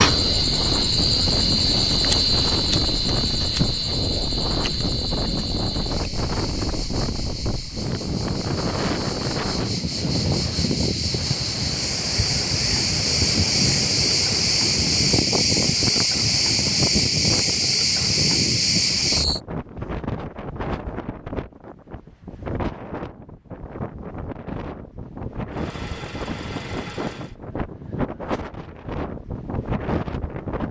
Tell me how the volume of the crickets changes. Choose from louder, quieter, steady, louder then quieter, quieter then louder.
quieter then louder.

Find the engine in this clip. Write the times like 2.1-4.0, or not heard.
25.4-27.4.